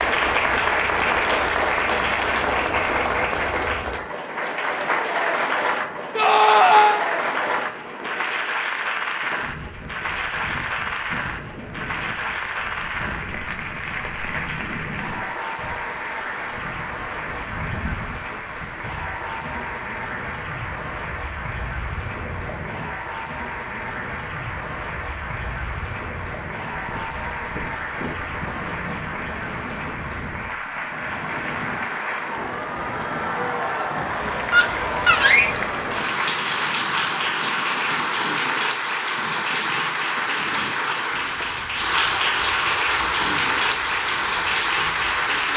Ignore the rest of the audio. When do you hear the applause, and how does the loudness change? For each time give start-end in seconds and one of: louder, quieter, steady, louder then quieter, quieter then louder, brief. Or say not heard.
0.0-45.5 quieter then louder.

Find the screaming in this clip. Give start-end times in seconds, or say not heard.
6.2-7.0, 34.5-35.5.